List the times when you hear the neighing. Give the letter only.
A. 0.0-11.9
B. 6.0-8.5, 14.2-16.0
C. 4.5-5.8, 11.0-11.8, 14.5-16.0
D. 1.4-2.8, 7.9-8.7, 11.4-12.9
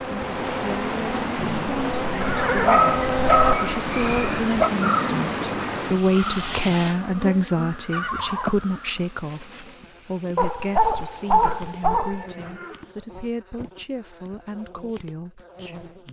D.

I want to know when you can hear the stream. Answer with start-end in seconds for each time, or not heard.
0.0-11.9.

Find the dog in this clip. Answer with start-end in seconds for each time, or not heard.
2.2-4.7, 10.3-12.2.